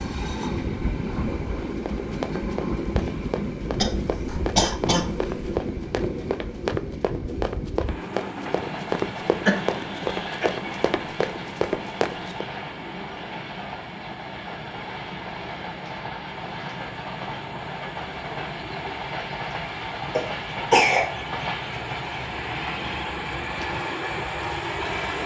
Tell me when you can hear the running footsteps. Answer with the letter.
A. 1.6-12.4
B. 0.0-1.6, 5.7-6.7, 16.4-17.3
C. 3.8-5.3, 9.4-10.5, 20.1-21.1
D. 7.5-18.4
A.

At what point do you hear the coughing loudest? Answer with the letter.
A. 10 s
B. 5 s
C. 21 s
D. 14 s
C.